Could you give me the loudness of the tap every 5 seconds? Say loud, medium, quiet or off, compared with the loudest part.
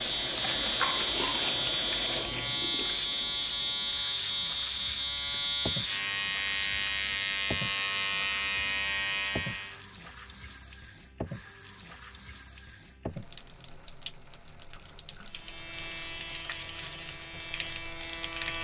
loud, medium, medium, medium.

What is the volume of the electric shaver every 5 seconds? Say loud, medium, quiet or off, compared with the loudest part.
loud, loud, off, medium.